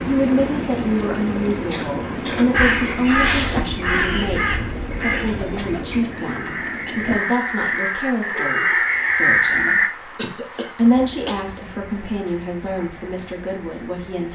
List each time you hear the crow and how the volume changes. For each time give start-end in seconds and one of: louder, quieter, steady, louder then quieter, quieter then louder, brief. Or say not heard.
2.5-9.9 quieter then louder.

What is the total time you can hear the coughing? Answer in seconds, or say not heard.
4 s.